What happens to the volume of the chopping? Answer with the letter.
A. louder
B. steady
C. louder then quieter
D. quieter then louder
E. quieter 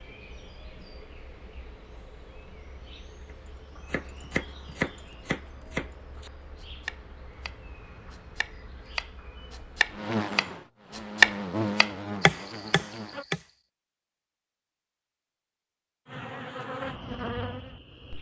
D.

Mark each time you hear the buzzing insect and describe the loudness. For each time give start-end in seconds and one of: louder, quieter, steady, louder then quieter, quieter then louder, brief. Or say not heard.
0.0-13.2 louder
16.1-18.1 brief.